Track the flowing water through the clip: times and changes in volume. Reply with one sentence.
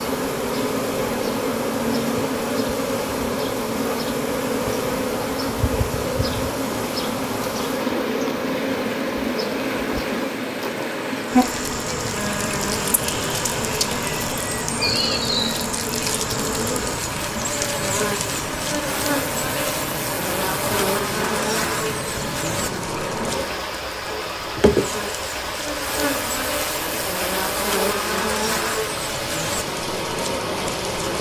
The flowing water can be heard from 0.0 to 31.1 s, at a steady volume.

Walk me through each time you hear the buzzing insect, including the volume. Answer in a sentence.
You can hear the buzzing insect from 0.0 to 31.1 s, at a steady volume.